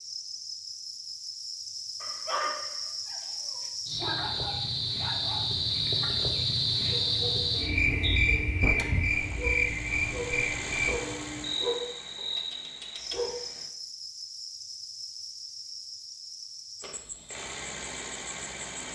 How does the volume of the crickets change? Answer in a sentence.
The loudness of the crickets goes up, then down.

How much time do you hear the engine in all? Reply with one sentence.
You can hear the engine for 6 seconds altogether.